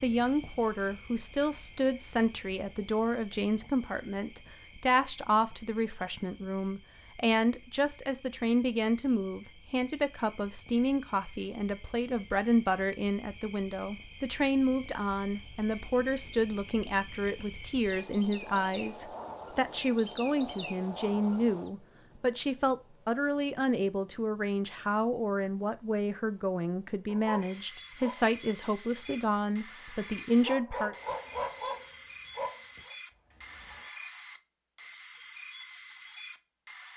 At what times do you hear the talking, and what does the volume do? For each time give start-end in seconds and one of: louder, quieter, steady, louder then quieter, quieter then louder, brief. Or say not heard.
0.0-30.9 steady.